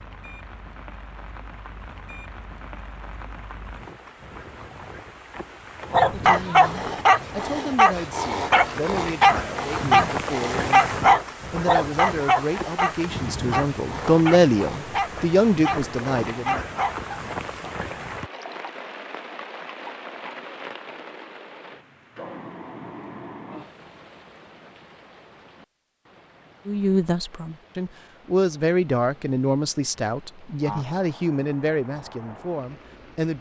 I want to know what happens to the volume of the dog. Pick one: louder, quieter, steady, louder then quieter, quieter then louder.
quieter.